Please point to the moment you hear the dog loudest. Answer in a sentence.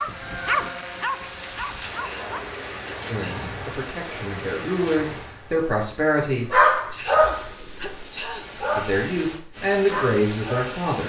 The loudest moment of the dog is at 7 seconds.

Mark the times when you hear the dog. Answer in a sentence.
The dog can be heard from 0.0 to 2.5 s, from 6.5 to 9.1 s and from 9.8 to 10.8 s.